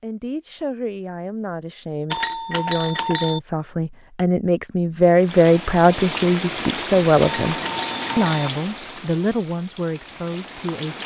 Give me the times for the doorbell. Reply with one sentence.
You can hear the doorbell from 2.1 to 3.4 s and from 7.2 to 8.5 s.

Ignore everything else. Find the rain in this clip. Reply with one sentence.
The rain can be heard from 5.2 to 11.0 s.